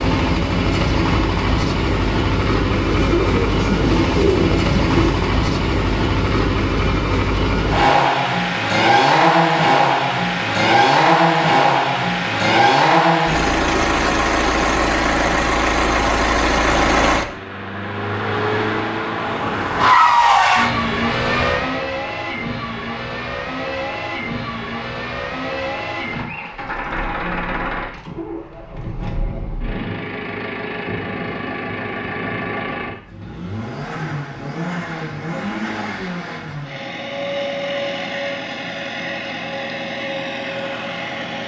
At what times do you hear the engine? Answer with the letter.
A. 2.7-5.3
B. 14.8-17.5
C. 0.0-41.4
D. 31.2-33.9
C.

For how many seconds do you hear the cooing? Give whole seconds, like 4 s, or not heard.
3 s.